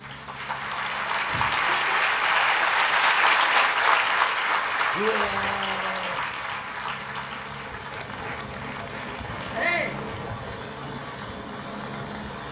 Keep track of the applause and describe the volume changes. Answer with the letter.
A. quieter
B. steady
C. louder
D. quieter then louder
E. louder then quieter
A.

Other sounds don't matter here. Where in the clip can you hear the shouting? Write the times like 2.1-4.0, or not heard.
1.2-1.8, 5.0-6.2, 9.5-10.0.